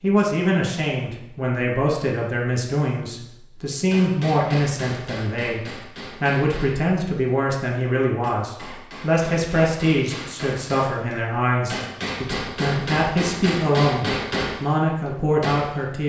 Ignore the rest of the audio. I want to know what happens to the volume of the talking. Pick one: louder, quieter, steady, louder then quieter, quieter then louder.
steady.